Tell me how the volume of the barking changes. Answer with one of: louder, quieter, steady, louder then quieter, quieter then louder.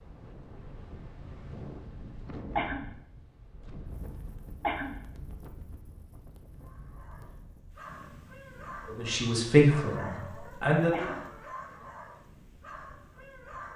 louder then quieter.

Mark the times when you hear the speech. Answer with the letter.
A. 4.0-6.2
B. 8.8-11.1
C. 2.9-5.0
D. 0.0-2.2
B.